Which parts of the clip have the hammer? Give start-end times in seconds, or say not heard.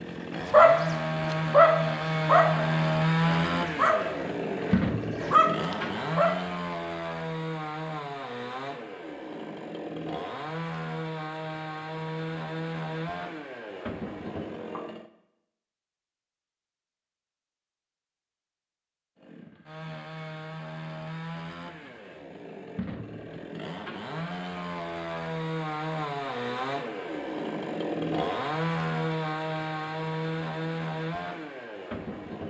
not heard.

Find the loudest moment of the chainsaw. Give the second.
3 s.